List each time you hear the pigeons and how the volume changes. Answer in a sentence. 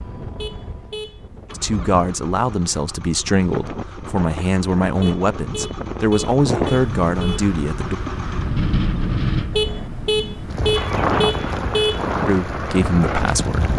You can't hear the pigeons here.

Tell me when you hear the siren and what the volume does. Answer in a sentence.
The siren can't be heard in this clip.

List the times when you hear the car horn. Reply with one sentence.
You can hear the car horn from 0.3 to 1.6 s, from 5.0 to 7.4 s and from 9.5 to 12.1 s.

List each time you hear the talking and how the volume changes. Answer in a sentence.
You can hear the talking from 1.6 to 8.0 s, at a steady volume; and briefly from 12.2 to 13.7 s.